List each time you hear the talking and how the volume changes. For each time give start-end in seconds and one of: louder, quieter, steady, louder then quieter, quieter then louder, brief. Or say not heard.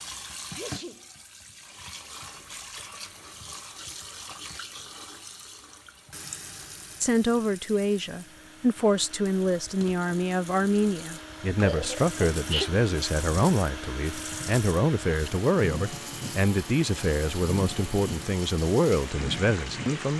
7.0-20.1 steady.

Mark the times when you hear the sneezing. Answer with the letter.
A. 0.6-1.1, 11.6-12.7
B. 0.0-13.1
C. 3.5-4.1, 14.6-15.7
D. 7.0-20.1
A.